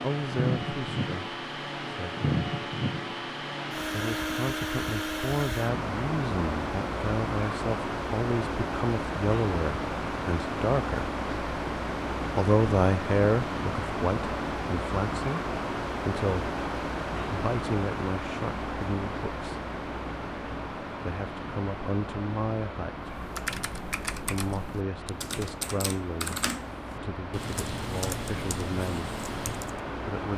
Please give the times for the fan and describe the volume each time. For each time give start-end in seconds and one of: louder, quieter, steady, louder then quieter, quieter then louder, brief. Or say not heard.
0.0-30.3 quieter.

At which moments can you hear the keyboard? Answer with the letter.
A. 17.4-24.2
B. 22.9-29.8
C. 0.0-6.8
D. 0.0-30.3
B.